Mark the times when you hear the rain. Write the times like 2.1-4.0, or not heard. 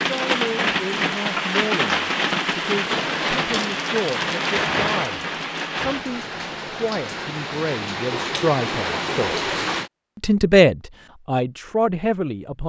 0.0-9.9.